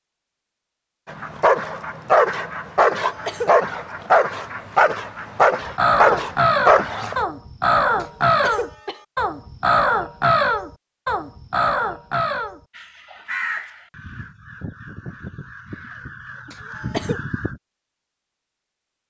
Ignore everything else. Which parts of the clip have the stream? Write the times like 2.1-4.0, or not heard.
not heard.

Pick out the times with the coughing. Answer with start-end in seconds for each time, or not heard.
2.8-3.5, 8.0-9.1, 16.4-17.2.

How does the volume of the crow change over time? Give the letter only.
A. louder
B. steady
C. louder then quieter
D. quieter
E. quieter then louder
D.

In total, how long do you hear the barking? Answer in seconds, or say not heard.
6 s.